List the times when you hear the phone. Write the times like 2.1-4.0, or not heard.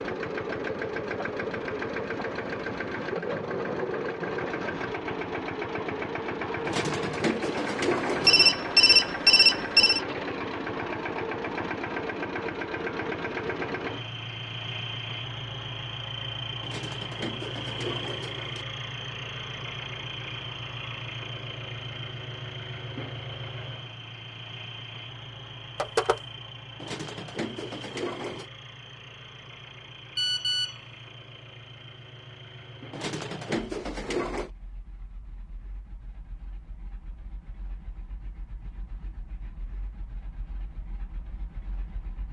8.2-10.0, 25.8-26.2, 30.1-30.8.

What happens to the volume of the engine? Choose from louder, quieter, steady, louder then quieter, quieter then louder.
quieter.